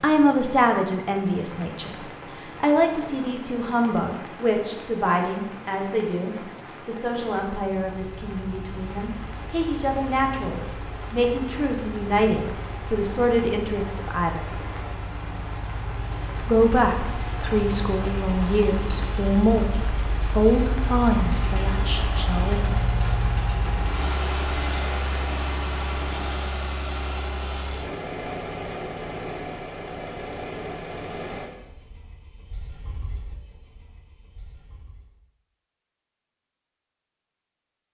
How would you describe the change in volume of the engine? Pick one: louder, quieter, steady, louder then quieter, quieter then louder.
louder then quieter.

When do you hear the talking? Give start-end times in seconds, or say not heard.
0.0-1.9, 2.6-14.4, 16.4-22.8.